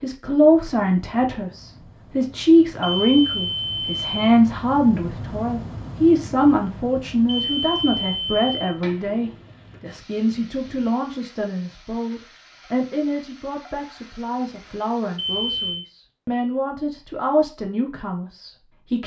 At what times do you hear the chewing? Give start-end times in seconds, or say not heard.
not heard.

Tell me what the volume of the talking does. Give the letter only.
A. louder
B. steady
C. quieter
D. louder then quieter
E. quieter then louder
C.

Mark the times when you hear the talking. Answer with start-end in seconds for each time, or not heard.
0.0-19.0.